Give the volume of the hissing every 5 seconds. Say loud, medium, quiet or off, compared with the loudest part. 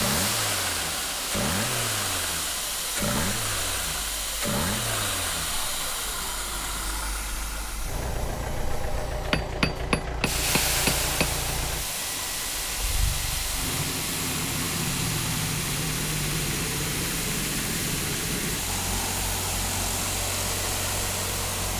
loud, medium, loud, loud, loud.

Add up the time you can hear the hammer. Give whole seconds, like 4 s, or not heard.
2 s.